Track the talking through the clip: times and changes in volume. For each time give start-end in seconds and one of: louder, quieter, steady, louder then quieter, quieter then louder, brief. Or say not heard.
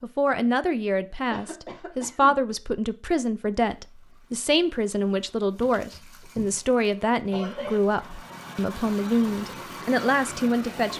0.0-10.9 steady.